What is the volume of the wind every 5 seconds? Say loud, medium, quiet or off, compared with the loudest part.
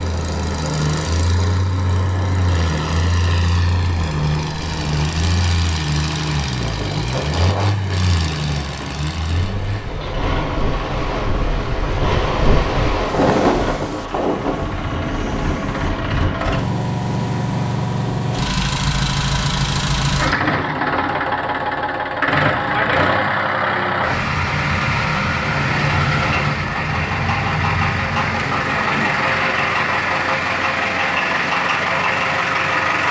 medium, medium, loud, medium, off, off, off.